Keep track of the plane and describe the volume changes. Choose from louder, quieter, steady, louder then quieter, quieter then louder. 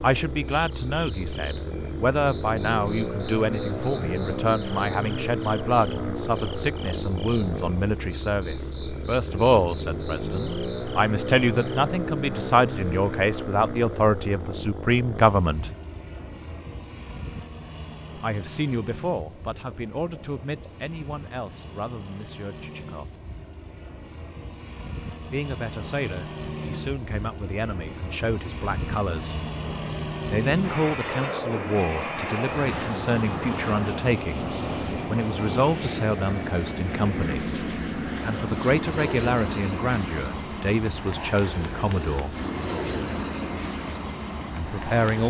quieter then louder.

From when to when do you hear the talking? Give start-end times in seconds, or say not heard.
0.0-15.7, 18.1-23.1, 25.3-29.4, 30.3-42.4, 44.5-45.2.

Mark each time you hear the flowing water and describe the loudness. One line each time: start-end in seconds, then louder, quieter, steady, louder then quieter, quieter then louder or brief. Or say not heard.
not heard.